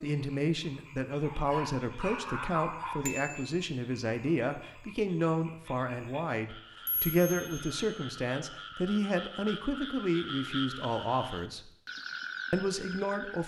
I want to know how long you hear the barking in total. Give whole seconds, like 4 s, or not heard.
2 s.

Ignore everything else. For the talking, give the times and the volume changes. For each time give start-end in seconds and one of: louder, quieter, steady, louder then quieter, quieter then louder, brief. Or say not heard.
0.0-11.7 steady
12.5-13.4 brief.